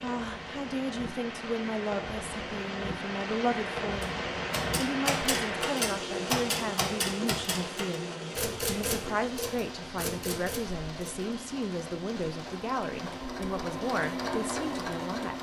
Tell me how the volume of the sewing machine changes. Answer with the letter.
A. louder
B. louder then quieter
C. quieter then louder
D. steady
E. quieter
A.